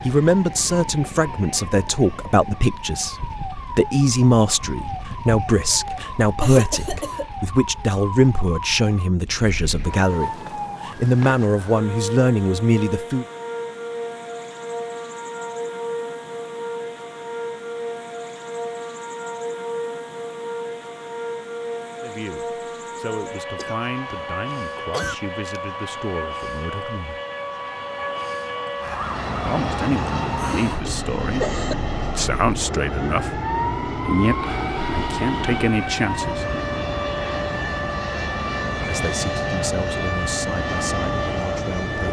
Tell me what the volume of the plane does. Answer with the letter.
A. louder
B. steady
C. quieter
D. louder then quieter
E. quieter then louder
B.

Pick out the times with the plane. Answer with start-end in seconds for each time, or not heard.
28.8-42.0.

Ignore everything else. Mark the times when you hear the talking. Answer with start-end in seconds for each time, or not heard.
0.1-13.2, 22.0-27.2, 29.4-36.5, 38.9-42.0.